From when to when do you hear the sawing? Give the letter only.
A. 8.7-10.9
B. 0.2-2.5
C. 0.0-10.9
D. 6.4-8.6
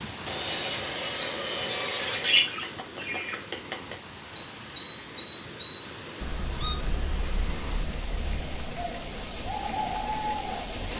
B.